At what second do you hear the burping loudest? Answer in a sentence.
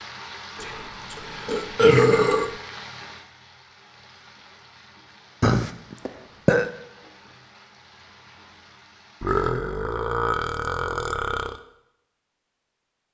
The loudest moment of the burping is at 2 seconds.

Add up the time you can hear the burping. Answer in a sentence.
You can hear the burping for 6 seconds altogether.